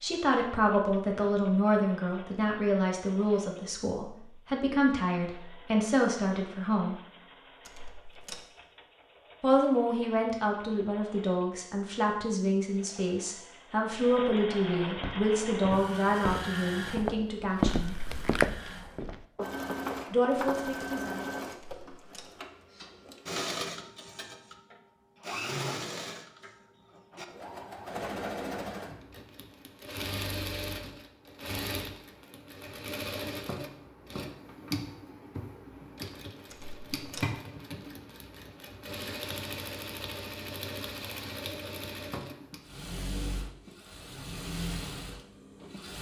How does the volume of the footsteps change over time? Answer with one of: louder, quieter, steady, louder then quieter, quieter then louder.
louder then quieter.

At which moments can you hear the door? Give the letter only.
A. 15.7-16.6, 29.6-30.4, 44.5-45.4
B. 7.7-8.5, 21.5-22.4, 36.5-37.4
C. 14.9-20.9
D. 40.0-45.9
B.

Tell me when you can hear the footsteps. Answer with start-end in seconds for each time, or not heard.
14.9-20.9.